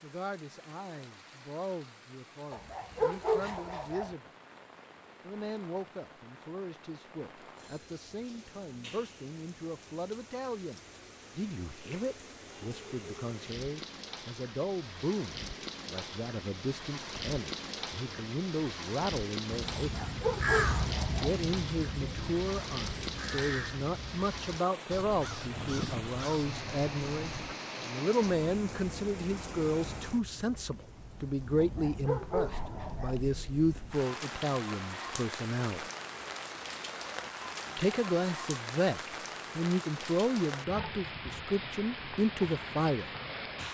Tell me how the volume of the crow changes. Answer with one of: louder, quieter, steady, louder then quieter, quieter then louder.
quieter.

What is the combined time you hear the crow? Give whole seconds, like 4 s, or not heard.
8 s.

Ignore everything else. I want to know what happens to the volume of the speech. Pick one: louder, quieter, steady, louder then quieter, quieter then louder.
louder.